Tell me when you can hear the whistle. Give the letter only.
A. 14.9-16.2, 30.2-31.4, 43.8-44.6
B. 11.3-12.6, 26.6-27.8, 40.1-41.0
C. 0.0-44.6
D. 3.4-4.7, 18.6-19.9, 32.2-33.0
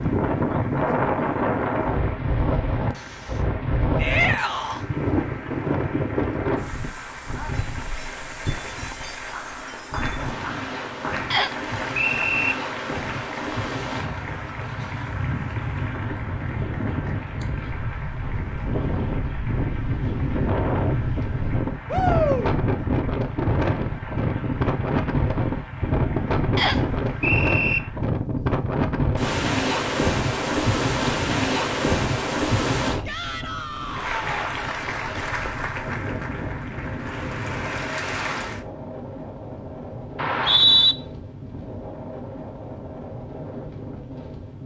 B.